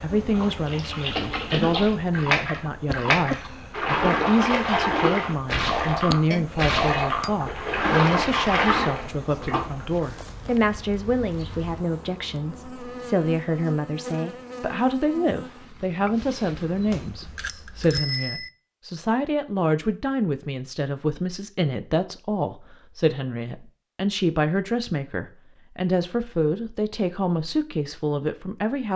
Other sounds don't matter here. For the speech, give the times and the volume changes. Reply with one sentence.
You can hear the speech from 0.0 to 28.9 s, at a steady volume.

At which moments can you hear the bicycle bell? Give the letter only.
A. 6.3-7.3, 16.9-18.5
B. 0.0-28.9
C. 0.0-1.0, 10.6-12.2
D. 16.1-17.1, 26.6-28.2
A.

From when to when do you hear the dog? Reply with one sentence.
The dog can't be heard in this clip.